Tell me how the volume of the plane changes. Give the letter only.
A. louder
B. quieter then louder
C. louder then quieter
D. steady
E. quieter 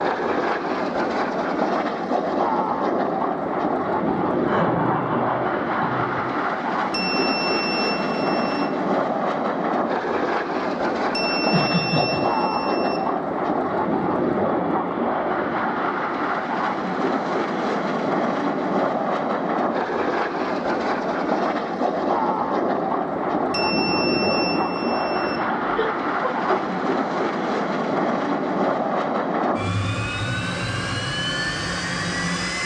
D.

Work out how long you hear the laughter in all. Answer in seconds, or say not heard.
4 s.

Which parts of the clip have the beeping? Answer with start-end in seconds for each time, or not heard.
6.9-8.7, 11.1-13.0, 23.5-25.4.